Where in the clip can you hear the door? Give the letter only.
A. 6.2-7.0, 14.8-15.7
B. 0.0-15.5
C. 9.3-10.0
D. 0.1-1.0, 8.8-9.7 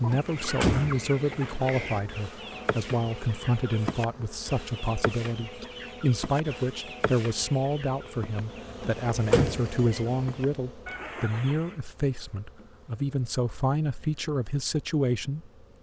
D.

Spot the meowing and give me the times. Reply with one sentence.
You can hear the meowing from 9.3 to 10.0 s.